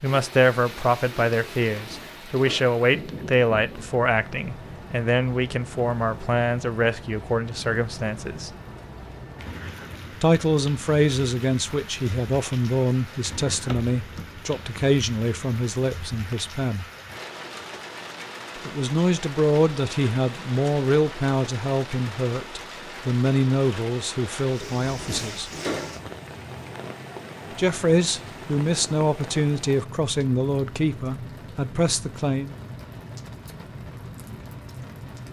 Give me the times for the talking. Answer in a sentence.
You can hear the talking from 0.0 to 8.5 s, from 10.2 to 16.9 s, from 18.6 to 25.5 s and from 27.6 to 32.5 s.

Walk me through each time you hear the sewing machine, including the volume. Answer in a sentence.
The sewing machine can't be heard in this clip.